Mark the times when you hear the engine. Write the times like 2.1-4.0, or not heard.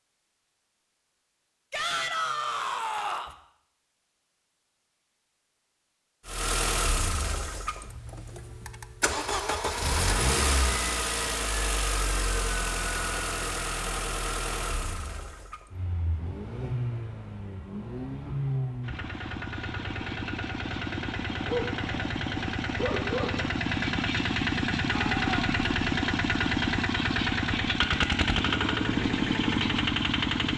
6.2-30.5.